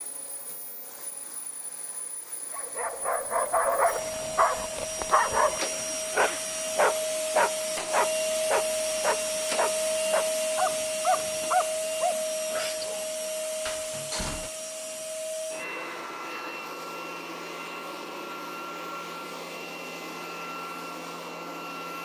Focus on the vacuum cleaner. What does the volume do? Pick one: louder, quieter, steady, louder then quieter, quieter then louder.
louder then quieter.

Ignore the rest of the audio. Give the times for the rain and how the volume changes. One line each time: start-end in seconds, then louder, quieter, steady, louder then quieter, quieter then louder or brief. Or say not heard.
not heard.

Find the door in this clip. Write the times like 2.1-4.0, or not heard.
5.5-5.9, 13.7-14.5.